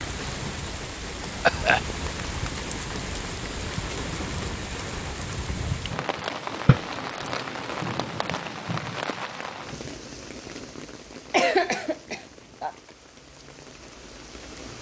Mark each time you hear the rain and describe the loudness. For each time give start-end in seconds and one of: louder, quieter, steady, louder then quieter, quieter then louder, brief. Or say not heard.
0.0-14.7 quieter.